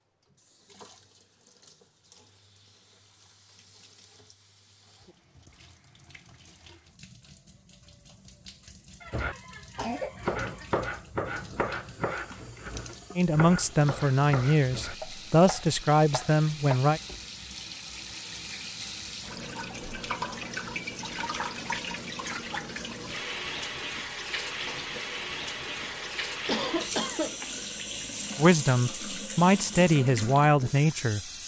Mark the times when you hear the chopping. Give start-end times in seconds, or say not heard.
9.1-17.2.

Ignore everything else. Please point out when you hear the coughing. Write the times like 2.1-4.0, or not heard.
9.0-10.7, 25.8-27.4.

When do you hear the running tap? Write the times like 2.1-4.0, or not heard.
0.0-31.4.